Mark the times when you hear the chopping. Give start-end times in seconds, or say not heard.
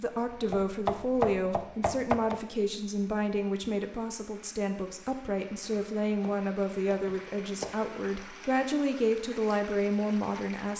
0.2-2.4, 5.7-7.8.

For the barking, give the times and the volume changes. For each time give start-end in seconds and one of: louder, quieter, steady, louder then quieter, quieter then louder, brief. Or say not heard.
not heard.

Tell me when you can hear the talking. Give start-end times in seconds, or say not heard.
0.0-10.7.